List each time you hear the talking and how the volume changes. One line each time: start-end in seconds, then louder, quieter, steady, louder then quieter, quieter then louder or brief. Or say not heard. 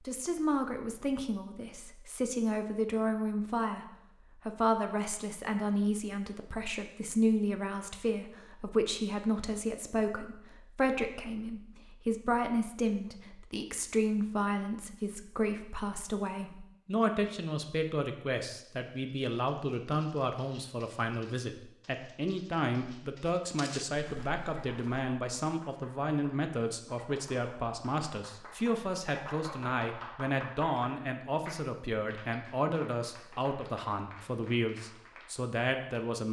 0.0-36.2 steady.